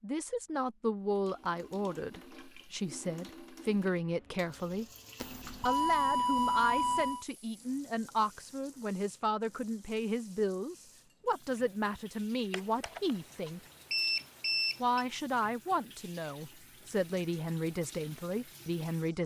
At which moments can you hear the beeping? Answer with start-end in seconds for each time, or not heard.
5.2-7.2, 12.5-15.1.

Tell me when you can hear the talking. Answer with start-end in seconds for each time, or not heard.
0.0-4.8, 5.7-13.6, 14.8-19.2.